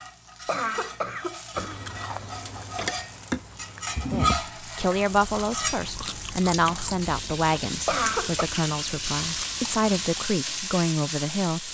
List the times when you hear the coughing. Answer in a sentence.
The coughing can be heard from 0.5 to 3.0 s and from 7.8 to 8.4 s.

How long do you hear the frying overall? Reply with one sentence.
The frying can be heard for 12 seconds in total.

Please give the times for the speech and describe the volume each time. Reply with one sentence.
The speech can be heard from 4.1 to 11.7 s, at a steady volume.